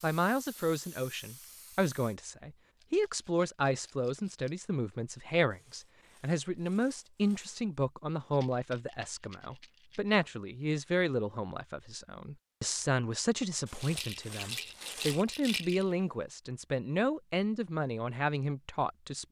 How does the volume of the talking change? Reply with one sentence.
The loudness of the talking stays about the same.